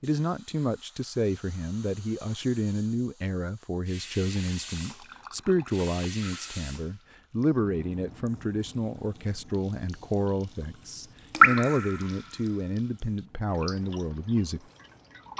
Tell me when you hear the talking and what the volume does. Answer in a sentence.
You can hear the talking from 0.0 to 14.6 s, at a steady volume.